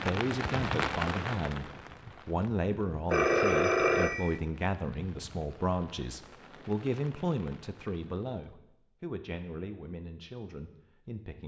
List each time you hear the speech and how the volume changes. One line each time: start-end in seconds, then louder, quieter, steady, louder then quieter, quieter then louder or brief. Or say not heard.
0.0-11.4 quieter.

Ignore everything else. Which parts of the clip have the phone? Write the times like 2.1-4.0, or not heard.
3.1-4.4.